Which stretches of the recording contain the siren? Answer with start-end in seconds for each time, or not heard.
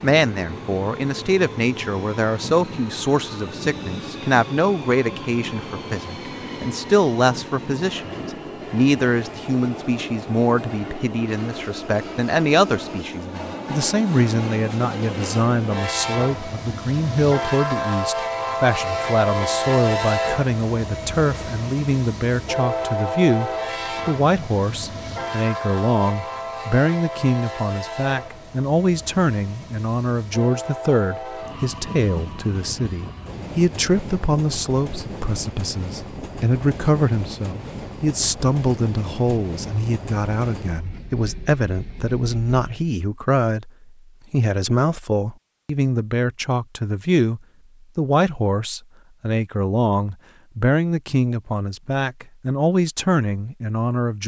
not heard.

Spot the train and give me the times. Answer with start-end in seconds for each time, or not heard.
0.0-42.6.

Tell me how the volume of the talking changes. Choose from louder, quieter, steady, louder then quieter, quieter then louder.
steady.